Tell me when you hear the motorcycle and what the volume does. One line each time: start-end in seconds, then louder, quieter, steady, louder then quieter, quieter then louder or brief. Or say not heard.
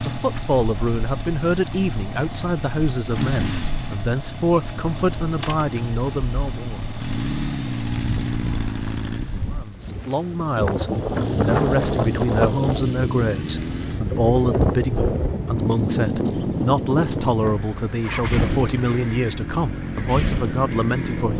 0.0-21.3 steady.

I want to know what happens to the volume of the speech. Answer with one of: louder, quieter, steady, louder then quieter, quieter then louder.
steady.